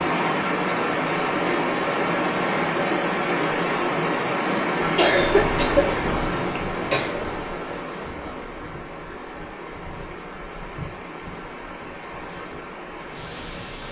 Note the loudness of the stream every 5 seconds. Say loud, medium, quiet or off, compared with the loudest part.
loud, medium, quiet.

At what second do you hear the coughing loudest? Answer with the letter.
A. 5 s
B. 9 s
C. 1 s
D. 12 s
A.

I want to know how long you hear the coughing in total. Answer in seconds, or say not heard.
2 s.